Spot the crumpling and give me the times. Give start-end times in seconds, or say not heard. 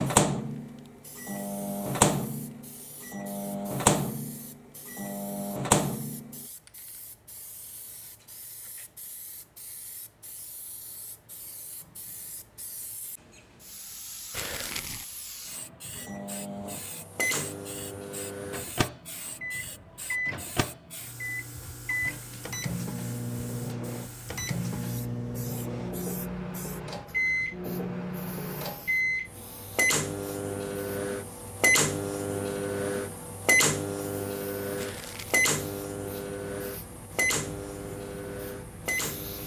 14.3-15.1, 34.8-35.5.